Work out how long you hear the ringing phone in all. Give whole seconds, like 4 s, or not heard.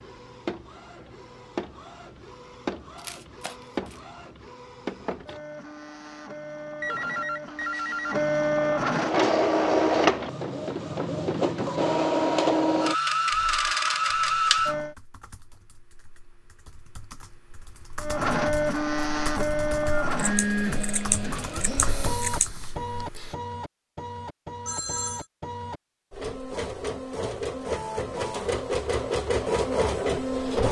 3 s.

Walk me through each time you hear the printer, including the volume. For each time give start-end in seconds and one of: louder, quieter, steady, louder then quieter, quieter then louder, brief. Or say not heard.
0.0-14.9 louder
18.0-30.6 quieter then louder.